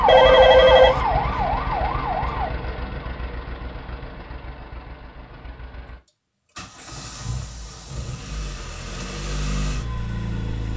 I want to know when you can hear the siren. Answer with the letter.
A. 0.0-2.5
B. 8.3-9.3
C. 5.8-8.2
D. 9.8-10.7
A.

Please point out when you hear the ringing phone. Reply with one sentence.
The ringing phone can be heard from 0.1 to 1.0 s.